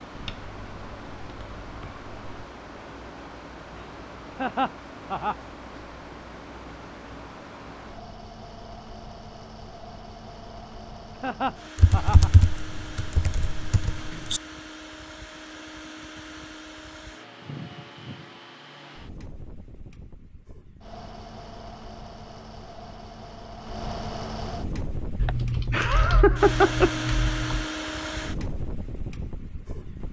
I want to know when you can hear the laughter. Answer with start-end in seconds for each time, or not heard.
4.3-5.3, 11.2-12.3, 25.2-26.9.